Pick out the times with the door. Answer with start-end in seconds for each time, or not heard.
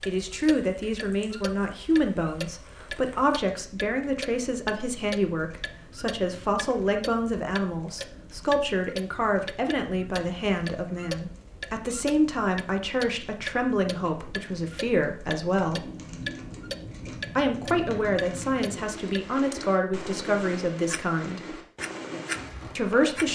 not heard.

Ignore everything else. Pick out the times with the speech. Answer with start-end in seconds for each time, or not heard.
0.1-15.8, 17.4-21.4, 22.8-23.3.